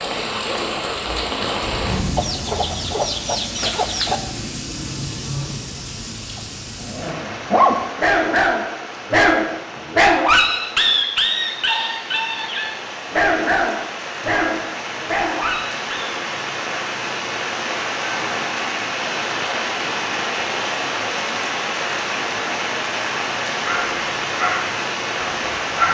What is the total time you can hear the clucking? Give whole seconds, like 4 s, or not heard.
2 s.